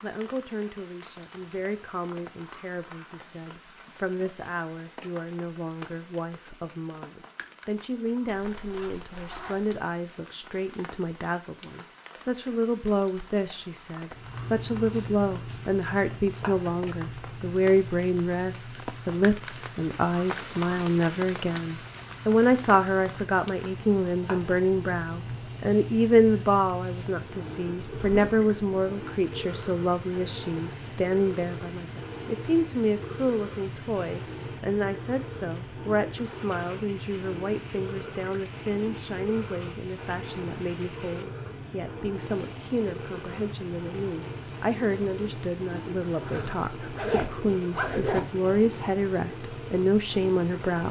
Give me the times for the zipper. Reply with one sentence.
You can hear the zipper from 8.2 to 9.8 s, from 28.0 to 28.4 s and from 46.2 to 48.2 s.